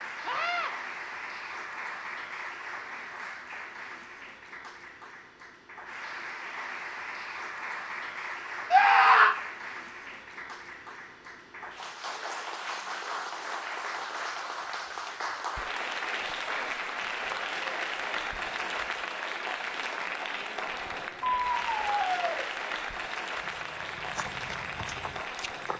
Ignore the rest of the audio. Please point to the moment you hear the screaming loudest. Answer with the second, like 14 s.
9 s.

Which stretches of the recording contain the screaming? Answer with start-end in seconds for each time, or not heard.
0.2-0.7, 8.7-9.3, 21.4-22.4.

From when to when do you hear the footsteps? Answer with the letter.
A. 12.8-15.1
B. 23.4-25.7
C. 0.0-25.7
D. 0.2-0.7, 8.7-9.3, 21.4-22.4
B.